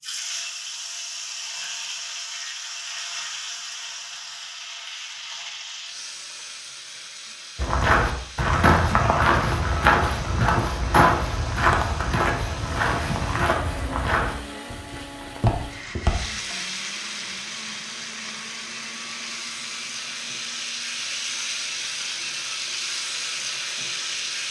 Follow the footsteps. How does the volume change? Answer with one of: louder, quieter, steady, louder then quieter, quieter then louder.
quieter.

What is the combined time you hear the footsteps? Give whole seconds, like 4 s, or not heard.
9 s.